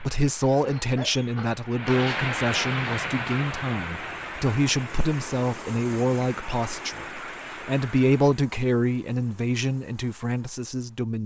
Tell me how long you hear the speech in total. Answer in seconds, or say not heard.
11 s.